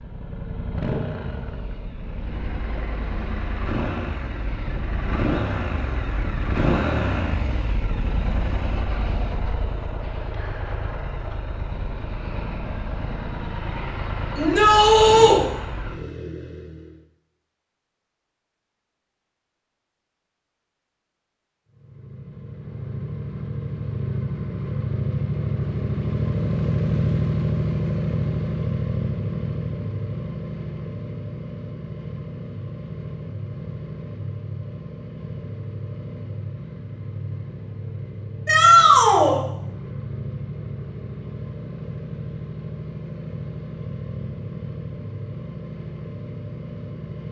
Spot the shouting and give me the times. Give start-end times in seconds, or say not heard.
14.3-15.4, 38.5-39.4.